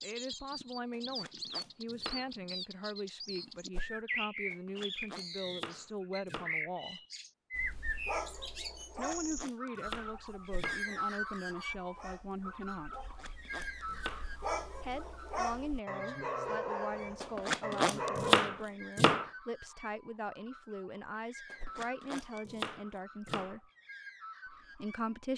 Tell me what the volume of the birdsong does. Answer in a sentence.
The loudness of the birdsong goes down.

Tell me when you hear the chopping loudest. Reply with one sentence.
The loudest moment of the chopping is at 18 seconds.